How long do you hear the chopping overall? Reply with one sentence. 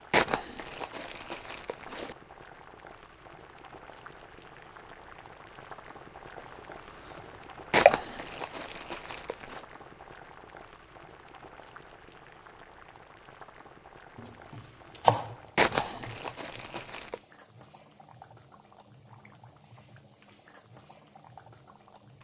You can hear the chopping for 4 seconds altogether.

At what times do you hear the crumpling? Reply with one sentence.
You can hear the crumpling from 0.1 to 2.1 s, from 7.7 to 9.6 s and from 15.6 to 17.1 s.